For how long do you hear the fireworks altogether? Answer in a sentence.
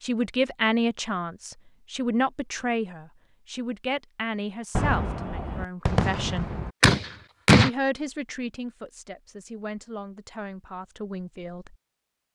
The fireworks can be heard for 3 seconds in total.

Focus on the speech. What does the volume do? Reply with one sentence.
The loudness of the speech goes down.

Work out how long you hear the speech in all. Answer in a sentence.
The speech can be heard for 11 seconds in total.